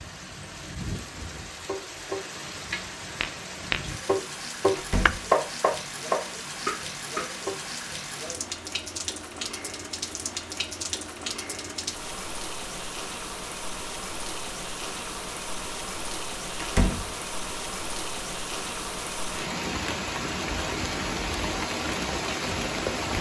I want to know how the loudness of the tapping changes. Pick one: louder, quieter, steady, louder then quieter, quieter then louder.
louder then quieter.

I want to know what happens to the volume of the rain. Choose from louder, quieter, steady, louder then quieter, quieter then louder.
louder.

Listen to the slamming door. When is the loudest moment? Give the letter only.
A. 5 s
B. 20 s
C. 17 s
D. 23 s
C.